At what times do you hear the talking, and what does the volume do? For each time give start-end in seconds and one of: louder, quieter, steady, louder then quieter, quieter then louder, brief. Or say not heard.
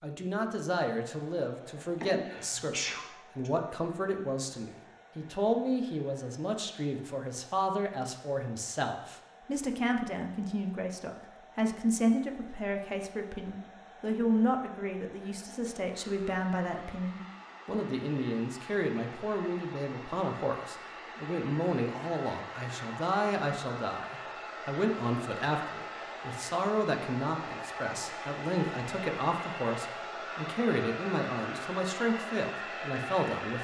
0.0-33.5 steady.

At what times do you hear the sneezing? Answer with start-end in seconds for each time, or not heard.
2.0-3.5.